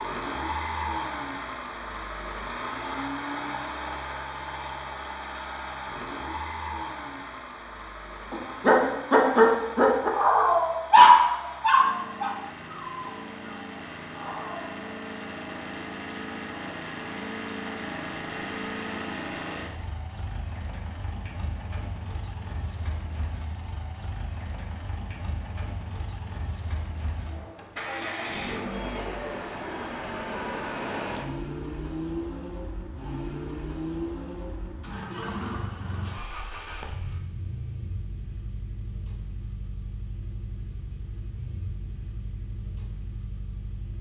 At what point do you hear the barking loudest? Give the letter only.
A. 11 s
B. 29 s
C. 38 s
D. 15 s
A.